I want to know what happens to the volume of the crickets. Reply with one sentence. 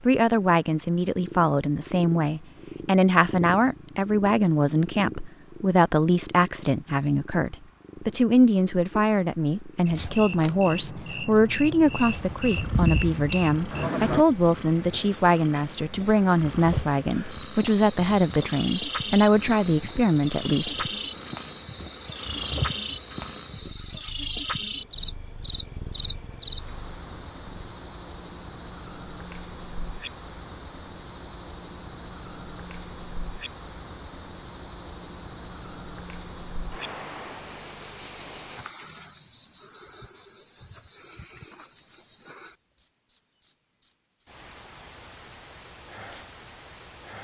The volume of the crickets goes up.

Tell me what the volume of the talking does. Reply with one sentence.
The loudness of the talking stays about the same.